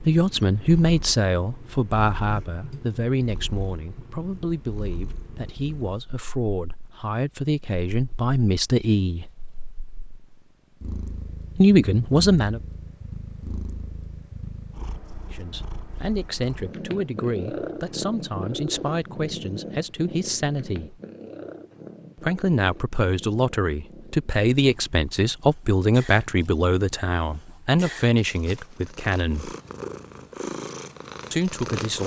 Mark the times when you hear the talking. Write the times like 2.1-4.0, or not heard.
0.0-9.3, 11.6-12.6, 15.3-21.0, 22.1-29.6, 31.3-32.0.